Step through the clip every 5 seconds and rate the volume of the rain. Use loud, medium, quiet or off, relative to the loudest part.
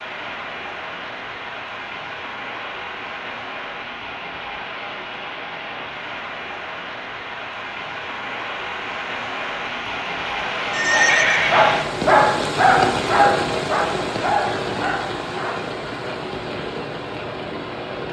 medium, medium, loud, medium.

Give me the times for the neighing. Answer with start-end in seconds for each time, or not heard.
10.7-11.7.